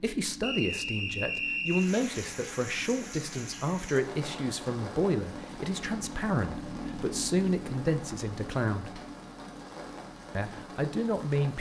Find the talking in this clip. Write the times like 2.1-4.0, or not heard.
0.0-9.0, 10.3-11.5.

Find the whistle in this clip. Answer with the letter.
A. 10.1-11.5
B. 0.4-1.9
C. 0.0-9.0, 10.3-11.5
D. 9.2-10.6
B.